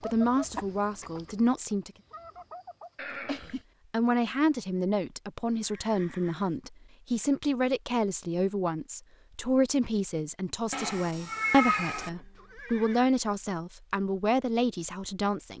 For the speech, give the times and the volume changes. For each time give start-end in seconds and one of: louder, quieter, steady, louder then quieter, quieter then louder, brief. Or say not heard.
0.0-1.9 brief
3.9-15.5 steady.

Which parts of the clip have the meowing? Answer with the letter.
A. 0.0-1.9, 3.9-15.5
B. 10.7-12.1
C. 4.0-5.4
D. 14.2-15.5
B.